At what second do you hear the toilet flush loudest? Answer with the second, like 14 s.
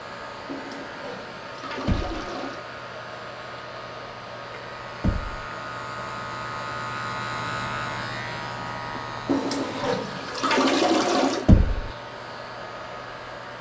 11 s.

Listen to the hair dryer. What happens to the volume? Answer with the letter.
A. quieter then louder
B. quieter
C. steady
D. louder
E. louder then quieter
C.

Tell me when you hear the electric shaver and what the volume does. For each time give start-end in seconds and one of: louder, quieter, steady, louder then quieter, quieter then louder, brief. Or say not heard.
0.0-13.5 louder then quieter.